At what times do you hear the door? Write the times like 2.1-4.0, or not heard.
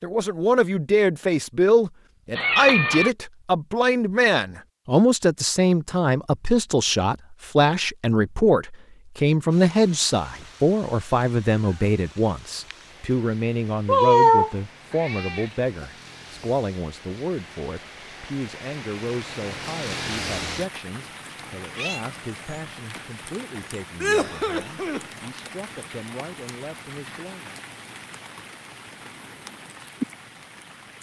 not heard.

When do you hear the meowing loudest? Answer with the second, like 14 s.
14 s.